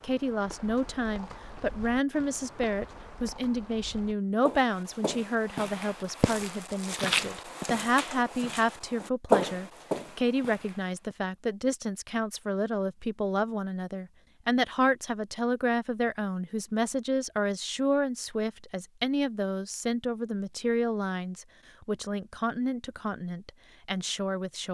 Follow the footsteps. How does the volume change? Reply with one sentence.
The loudness of the footsteps goes up.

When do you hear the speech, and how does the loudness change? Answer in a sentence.
The speech can be heard from 0.0 to 24.7 s, at a steady volume.